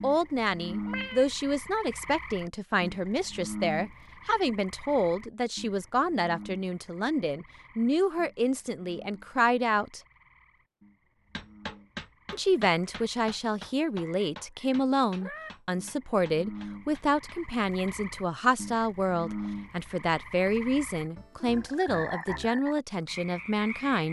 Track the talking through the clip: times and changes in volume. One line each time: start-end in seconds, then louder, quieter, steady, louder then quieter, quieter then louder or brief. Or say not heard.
0.0-10.0 steady
12.3-24.0 steady.